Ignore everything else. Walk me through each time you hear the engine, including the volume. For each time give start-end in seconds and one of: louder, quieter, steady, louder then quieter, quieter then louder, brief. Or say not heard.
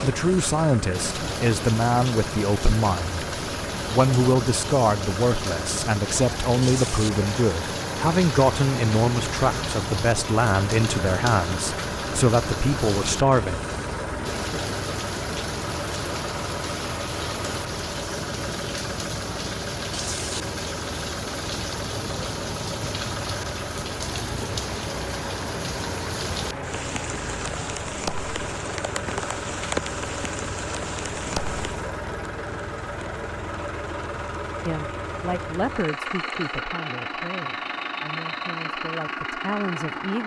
0.0-40.2 steady.